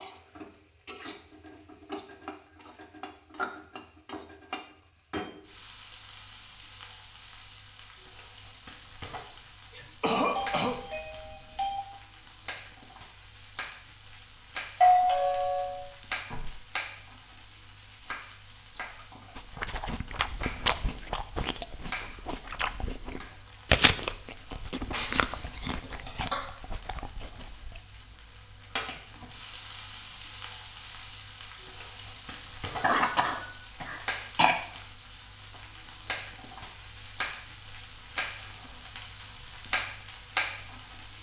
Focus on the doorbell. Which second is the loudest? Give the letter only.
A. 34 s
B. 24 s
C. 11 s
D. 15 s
D.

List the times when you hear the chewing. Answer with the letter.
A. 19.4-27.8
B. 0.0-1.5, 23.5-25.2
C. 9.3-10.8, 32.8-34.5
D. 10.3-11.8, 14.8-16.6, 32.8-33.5
A.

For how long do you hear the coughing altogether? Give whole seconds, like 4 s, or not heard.
3 s.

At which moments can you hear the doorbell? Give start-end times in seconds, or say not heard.
10.3-11.8, 14.8-16.6, 32.8-33.5.